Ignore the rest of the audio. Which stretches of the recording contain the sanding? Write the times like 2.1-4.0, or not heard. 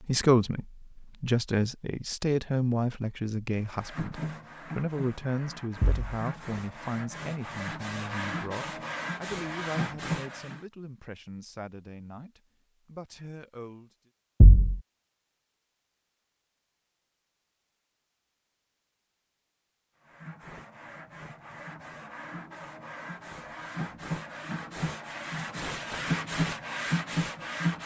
3.5-10.7, 20.0-27.8.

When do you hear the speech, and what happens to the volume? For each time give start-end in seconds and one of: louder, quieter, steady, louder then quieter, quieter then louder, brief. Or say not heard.
0.0-14.1 quieter.